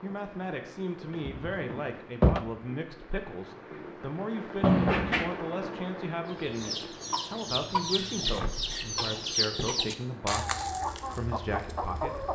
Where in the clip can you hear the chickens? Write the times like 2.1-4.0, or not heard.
6.2-12.3.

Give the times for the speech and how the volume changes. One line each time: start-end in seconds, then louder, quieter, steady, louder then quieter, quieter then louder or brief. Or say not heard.
0.0-12.2 steady.